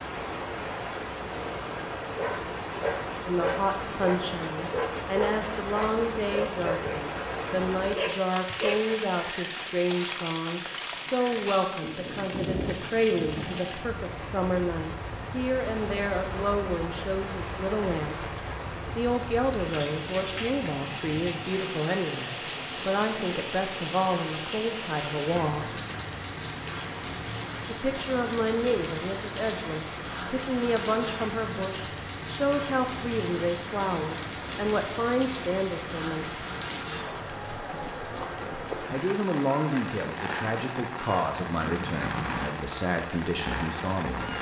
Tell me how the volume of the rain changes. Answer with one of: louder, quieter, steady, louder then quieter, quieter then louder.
steady.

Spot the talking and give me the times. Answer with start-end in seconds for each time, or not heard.
3.2-18.2, 18.9-25.8, 27.6-36.4, 38.9-44.3.